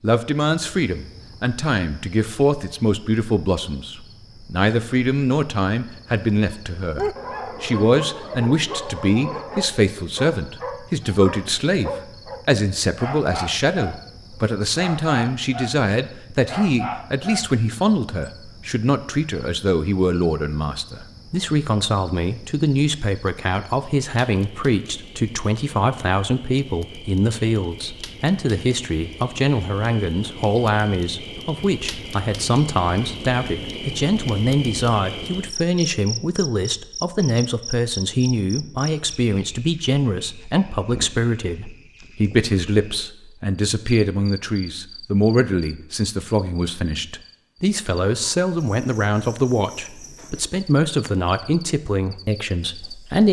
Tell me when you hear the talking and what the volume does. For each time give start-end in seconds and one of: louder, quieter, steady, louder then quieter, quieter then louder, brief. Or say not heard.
0.0-53.2 steady.